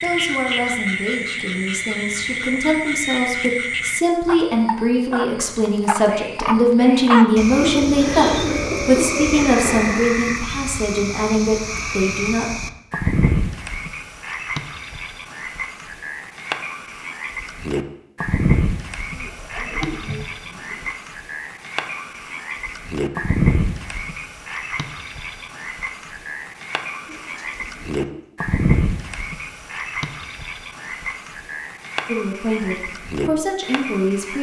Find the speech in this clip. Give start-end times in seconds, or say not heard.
0.0-12.6, 32.0-34.3.